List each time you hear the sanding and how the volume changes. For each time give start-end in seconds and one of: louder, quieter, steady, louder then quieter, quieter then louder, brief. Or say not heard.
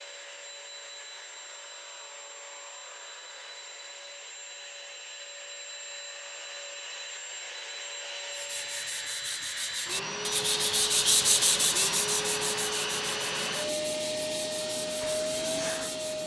8.3-16.2 louder then quieter.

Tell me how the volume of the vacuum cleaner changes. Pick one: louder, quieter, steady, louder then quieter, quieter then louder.
louder.